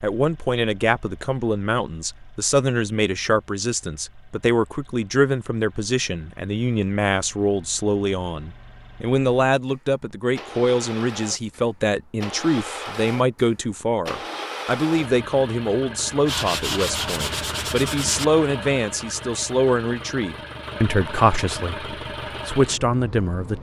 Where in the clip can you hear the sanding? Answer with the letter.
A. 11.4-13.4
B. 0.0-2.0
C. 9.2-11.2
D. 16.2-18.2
D.